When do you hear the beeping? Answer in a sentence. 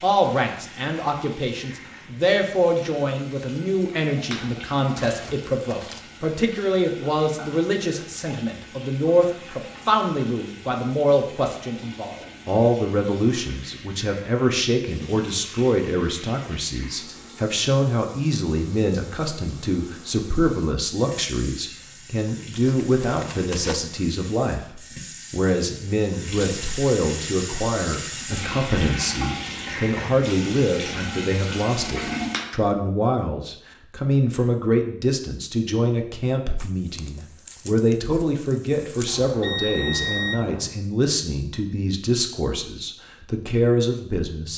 The beeping can be heard from 39.0 to 40.8 s.